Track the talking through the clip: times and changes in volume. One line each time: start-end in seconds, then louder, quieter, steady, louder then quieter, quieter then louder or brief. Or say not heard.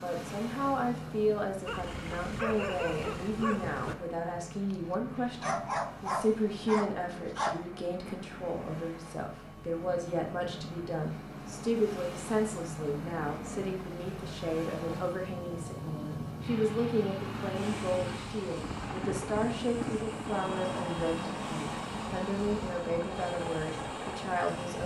0.0-24.8 steady.